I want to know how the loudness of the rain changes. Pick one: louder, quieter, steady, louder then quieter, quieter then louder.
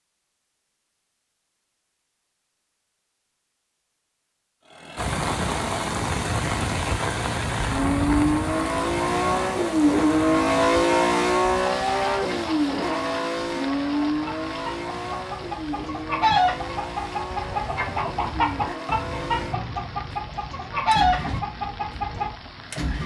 quieter.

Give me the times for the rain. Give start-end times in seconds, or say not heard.
5.0-23.0.